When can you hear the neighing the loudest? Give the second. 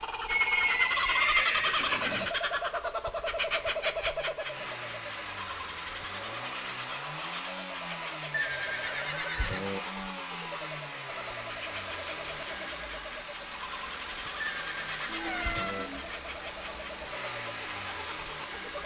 1 s.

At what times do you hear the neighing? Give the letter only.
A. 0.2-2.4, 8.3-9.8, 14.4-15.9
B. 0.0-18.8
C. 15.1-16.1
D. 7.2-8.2
A.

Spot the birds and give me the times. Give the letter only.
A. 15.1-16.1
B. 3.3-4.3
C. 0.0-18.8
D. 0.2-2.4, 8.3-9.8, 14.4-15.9
C.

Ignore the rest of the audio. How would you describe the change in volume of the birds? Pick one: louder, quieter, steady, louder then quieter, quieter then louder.
quieter.